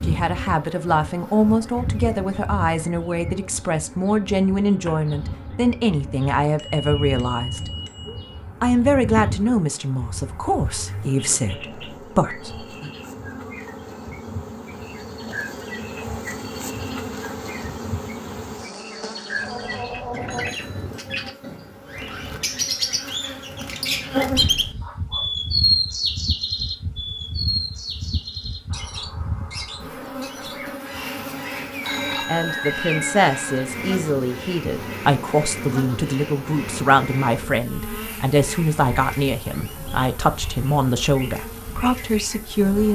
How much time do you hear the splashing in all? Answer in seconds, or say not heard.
not heard.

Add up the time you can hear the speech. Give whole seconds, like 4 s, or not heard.
23 s.